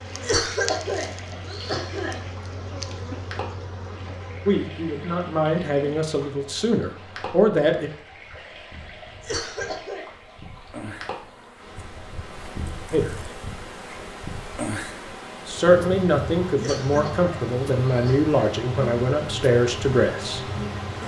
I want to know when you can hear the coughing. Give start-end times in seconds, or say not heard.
0.2-2.1, 9.2-10.1, 16.6-18.3.